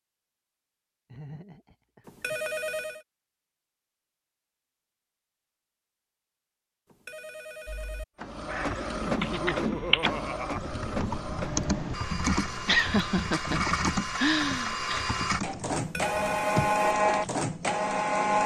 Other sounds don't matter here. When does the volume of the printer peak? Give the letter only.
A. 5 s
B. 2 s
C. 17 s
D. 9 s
C.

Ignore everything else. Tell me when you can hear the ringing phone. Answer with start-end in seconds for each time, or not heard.
2.0-3.0, 6.8-8.1, 15.8-16.9.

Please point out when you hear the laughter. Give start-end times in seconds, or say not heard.
1.1-2.5, 9.1-10.7, 12.7-15.2.